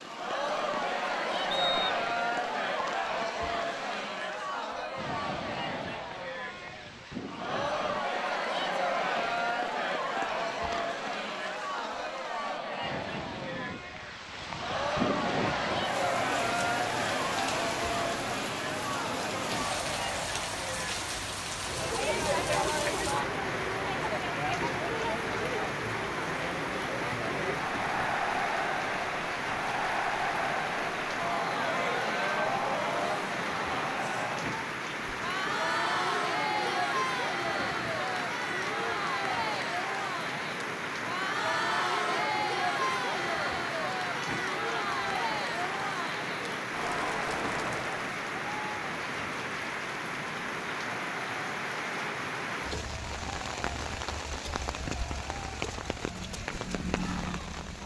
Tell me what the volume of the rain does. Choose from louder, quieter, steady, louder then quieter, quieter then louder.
louder.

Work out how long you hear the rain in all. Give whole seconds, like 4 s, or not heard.
58 s.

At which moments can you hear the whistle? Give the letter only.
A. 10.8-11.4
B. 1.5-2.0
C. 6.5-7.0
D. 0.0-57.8
B.